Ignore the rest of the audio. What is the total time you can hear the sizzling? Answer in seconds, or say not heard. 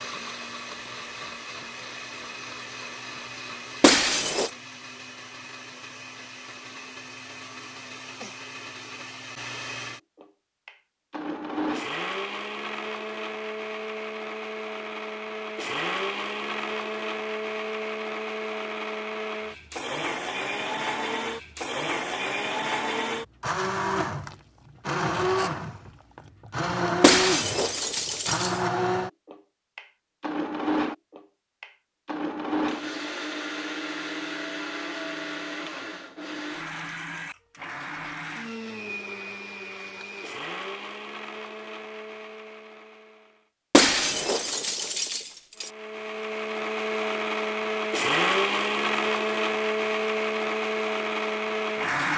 not heard.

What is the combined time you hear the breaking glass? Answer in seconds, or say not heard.
4 s.